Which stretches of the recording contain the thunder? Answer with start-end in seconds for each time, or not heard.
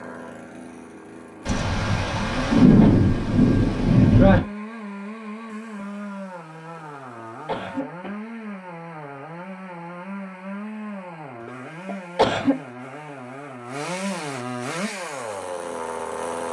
1.4-4.4.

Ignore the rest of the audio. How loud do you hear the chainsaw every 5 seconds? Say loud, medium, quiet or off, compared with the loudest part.
medium, medium, loud, loud.